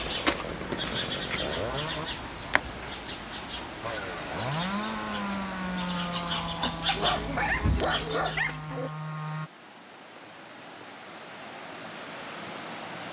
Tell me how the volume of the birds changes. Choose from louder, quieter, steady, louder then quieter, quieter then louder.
quieter then louder.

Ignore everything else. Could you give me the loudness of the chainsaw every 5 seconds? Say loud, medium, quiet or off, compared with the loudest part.
loud, loud, off.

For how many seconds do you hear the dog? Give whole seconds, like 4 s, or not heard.
2 s.